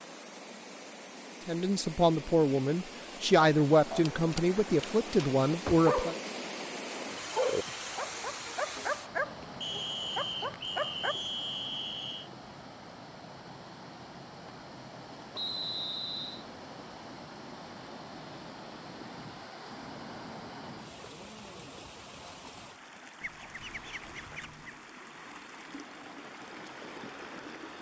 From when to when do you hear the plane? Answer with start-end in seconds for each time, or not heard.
not heard.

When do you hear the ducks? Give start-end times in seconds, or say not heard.
23.2-24.8.